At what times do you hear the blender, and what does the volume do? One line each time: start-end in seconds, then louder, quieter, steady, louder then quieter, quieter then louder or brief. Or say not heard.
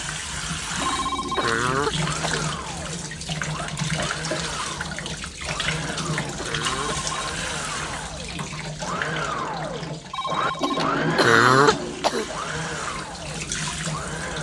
1.9-14.3 louder then quieter.